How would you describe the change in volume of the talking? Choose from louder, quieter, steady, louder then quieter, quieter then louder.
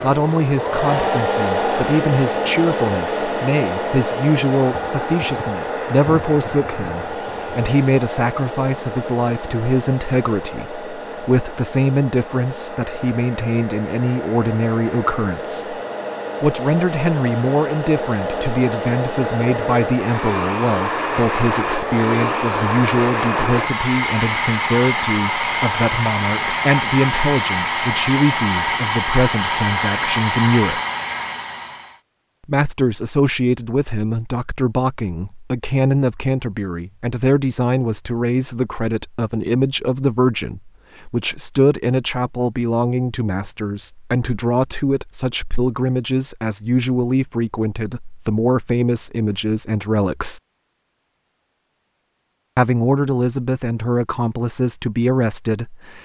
steady.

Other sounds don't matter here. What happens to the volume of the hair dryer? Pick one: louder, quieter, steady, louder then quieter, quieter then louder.
quieter then louder.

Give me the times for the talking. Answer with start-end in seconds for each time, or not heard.
0.0-15.8, 16.4-30.8, 32.5-50.4, 52.5-56.0.